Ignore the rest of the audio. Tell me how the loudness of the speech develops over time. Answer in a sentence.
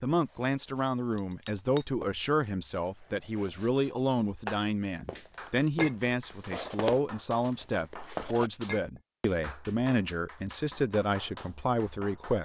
The loudness of the speech stays about the same.